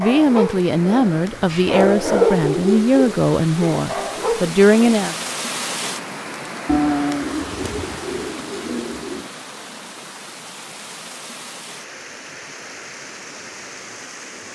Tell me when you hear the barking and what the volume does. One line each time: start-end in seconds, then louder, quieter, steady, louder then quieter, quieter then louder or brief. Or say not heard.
0.0-5.1 louder then quieter.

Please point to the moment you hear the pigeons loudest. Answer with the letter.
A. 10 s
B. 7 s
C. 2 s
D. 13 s
B.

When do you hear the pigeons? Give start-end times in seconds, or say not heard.
6.7-9.2.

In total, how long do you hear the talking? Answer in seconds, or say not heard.
5 s.